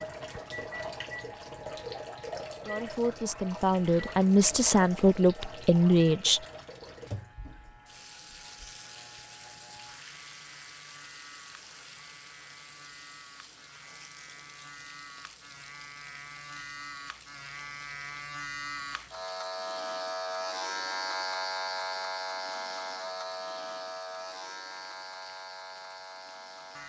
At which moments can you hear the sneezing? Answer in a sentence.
The sneezing can't be heard in this clip.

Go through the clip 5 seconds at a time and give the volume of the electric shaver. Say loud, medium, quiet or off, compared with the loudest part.
quiet, quiet, quiet, medium, loud, medium.